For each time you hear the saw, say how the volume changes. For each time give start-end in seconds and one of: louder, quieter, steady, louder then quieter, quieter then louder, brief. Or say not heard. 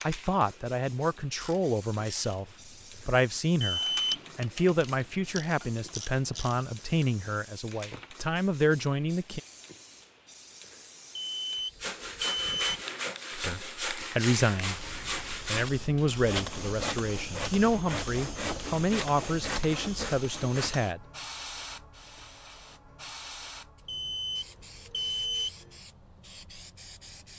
11.8-20.9 steady.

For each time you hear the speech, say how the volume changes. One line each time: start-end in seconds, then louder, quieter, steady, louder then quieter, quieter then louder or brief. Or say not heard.
0.0-9.4 steady
13.3-21.0 steady.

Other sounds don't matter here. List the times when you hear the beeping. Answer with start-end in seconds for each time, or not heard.
3.6-4.2, 11.4-12.8, 23.9-25.5.